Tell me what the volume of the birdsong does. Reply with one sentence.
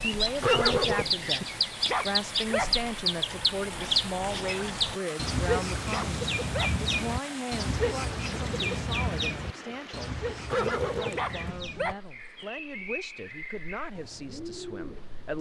The loudness of the birdsong goes down.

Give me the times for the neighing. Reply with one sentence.
The neighing can be heard from 0.4 to 1.4 s and from 10.5 to 11.6 s.